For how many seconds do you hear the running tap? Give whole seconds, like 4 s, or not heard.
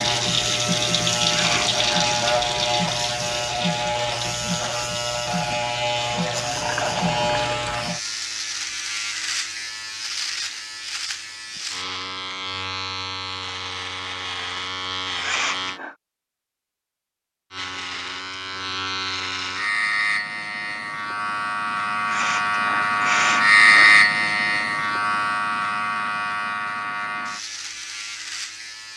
8 s.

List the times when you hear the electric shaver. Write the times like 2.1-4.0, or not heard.
0.0-15.8, 17.5-28.9.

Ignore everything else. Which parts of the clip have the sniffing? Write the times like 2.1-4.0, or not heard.
1.2-2.0, 15.2-15.9, 22.1-24.0.